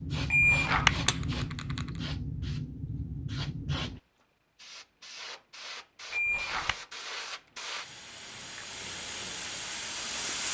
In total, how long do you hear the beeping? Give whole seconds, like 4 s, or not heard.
2 s.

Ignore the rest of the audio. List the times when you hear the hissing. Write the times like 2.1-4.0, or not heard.
0.0-10.4.